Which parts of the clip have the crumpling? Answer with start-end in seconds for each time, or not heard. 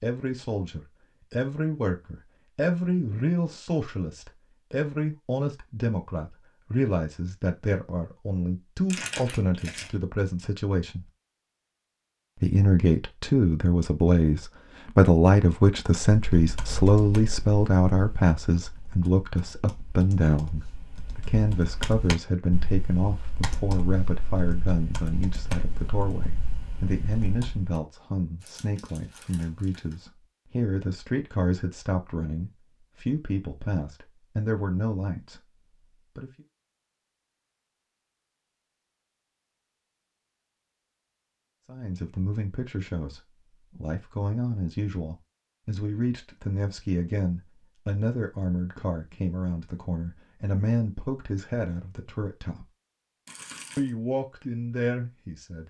8.9-9.9, 28.4-29.9, 53.2-53.9.